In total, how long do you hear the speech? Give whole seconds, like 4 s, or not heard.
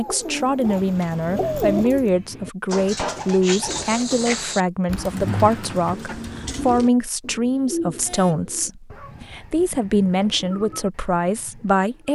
12 s.